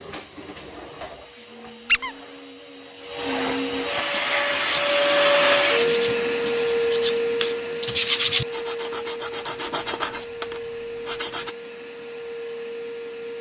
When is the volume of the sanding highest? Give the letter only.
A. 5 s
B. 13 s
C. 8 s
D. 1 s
C.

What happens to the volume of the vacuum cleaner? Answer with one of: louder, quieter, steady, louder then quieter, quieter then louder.
louder then quieter.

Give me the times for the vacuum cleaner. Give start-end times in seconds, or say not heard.
0.0-13.3.